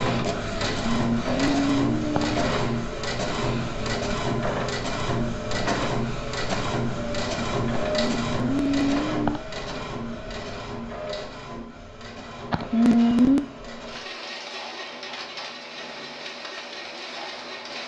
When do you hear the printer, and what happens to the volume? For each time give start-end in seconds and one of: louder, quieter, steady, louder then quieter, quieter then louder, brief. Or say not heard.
0.0-17.8 quieter.